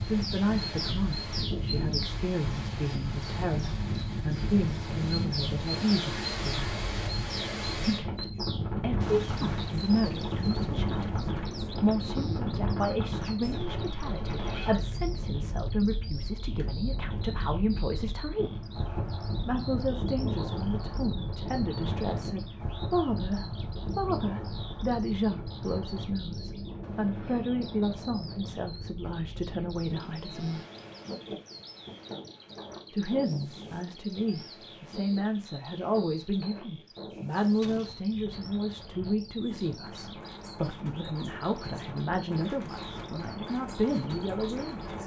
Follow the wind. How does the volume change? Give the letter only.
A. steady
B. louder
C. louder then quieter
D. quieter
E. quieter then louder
D.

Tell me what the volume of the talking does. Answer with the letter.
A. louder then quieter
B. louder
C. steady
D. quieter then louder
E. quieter
C.